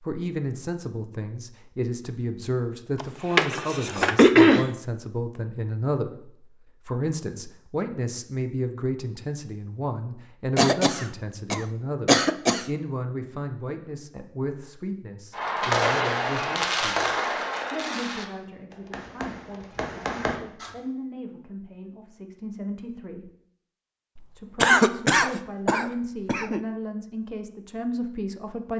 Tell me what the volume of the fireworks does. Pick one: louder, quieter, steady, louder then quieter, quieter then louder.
quieter then louder.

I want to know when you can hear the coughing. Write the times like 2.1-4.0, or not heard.
3.0-4.7, 10.6-12.7, 24.6-26.6.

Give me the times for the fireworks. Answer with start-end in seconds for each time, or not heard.
15.3-20.7.